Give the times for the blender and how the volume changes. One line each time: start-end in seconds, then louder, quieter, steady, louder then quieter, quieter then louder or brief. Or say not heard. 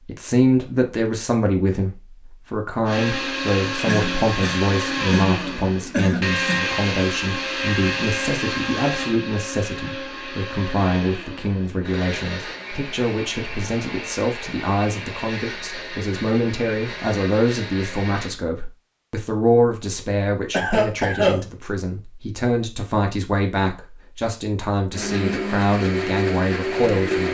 2.9-18.4 quieter
24.9-27.3 brief.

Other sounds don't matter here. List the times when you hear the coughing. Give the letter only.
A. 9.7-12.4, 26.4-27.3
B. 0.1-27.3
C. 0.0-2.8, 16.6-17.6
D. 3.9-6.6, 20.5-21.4
D.